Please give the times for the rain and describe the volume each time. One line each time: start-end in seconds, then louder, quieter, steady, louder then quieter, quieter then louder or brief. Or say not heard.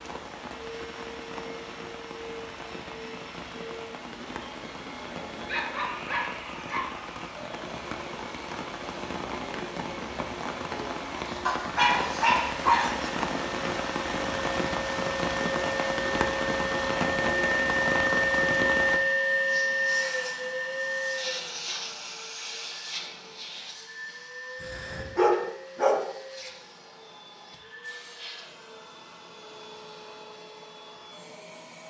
0.0-19.0 louder.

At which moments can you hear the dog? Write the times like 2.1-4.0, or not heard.
5.3-7.0, 11.4-13.1, 24.6-26.0.